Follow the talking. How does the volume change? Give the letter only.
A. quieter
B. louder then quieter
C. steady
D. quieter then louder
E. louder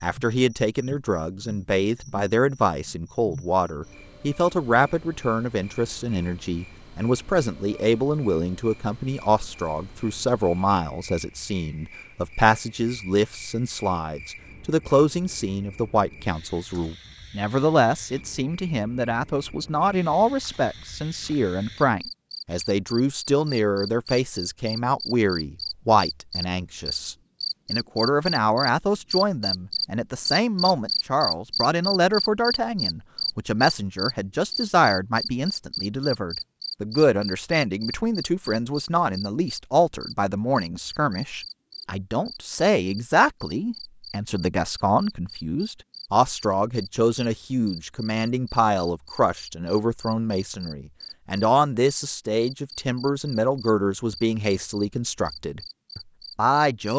C.